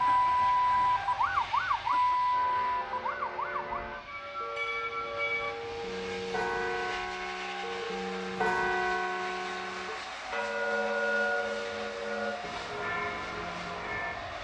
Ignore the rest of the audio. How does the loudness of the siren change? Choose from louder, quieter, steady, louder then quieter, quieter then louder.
quieter.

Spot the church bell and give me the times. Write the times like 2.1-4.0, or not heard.
2.2-14.2.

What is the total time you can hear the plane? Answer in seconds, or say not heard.
14 s.